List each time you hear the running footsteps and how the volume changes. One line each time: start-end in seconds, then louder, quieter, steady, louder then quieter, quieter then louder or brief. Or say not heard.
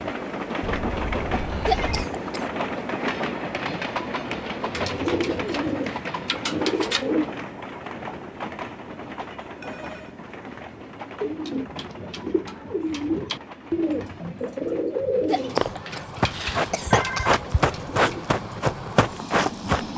15.6-19.9 steady.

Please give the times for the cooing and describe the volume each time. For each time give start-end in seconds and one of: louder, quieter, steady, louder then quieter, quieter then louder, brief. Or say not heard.
4.7-7.3 brief
11.2-18.3 louder then quieter.